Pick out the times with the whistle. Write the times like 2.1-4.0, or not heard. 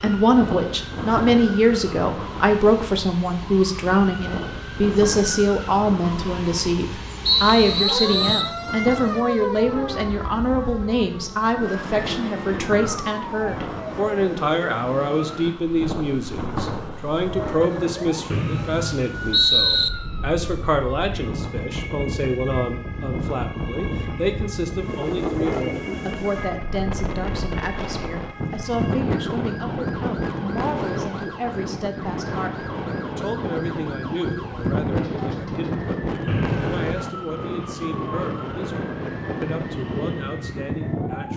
7.2-8.6, 18.3-19.9, 36.2-37.1.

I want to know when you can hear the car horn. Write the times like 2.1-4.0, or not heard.
not heard.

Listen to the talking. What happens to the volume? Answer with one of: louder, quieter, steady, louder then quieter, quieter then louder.
quieter.